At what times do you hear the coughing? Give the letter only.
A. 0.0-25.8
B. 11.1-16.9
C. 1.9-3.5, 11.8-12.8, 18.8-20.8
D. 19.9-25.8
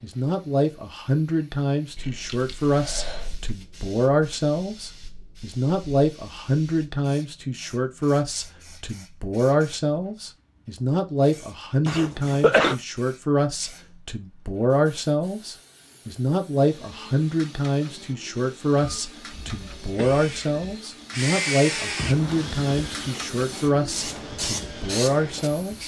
C.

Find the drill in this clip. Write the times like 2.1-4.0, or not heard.
19.9-25.8.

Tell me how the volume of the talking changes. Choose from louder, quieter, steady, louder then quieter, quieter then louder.
steady.